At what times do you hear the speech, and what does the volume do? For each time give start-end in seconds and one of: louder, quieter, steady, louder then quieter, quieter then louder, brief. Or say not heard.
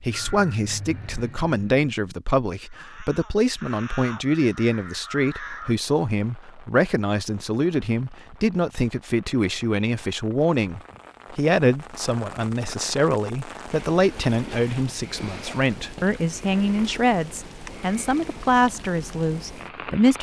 0.0-20.1 steady.